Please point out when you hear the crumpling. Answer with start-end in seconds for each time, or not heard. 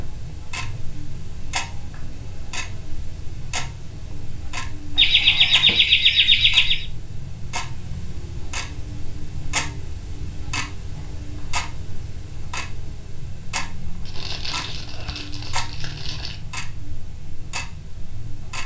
14.1-16.4.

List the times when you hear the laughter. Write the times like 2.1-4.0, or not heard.
5.0-6.8.